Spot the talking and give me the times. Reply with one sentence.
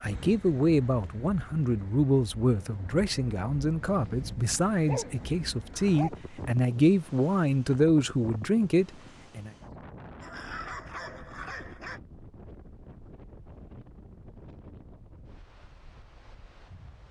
The talking can be heard from 0.0 to 9.5 s.